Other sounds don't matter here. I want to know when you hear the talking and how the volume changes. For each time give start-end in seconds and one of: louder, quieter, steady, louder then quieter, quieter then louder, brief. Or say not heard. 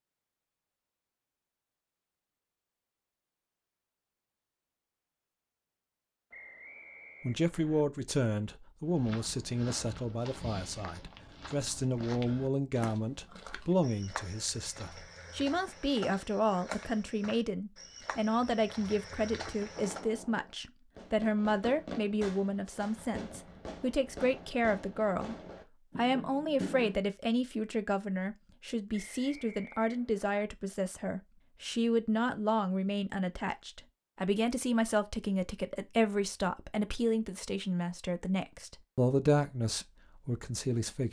7.2-25.4 steady
25.9-41.0 steady.